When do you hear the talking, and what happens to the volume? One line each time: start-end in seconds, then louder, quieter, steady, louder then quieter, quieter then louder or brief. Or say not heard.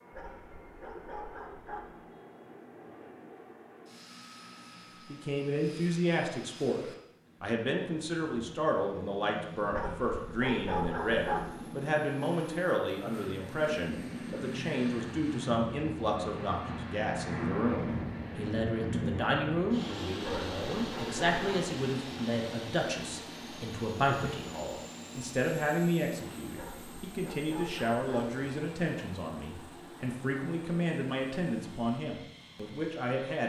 5.1-33.4 steady.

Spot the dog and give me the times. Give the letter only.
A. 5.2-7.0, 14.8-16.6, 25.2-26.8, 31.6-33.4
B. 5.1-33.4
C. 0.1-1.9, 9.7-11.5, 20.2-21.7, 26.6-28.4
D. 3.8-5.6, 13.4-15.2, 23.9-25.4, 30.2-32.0
C.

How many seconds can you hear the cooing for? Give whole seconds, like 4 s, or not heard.
not heard.